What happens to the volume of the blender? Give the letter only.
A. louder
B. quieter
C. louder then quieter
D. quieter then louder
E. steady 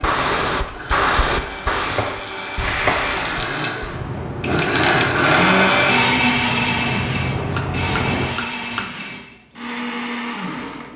C.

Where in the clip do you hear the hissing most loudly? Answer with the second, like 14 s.
1 s.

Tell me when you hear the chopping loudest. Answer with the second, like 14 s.
3 s.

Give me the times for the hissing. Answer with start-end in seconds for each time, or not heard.
0.0-8.3.